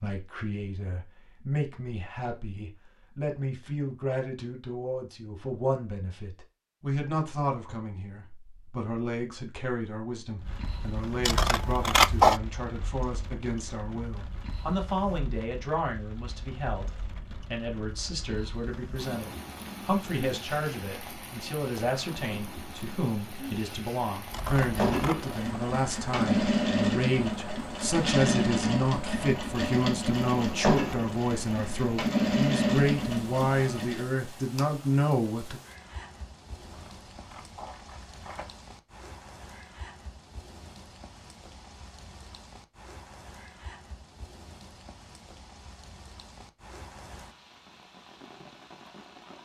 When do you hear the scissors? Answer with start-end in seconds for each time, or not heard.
11.2-12.4, 24.3-25.2, 36.6-38.5.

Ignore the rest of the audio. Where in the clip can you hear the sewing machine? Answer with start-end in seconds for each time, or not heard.
24.6-34.1.